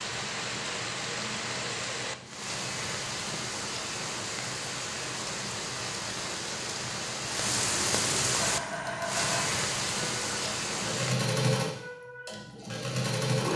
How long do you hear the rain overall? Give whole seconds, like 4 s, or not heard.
11 s.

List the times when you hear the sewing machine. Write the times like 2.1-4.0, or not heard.
8.3-13.5.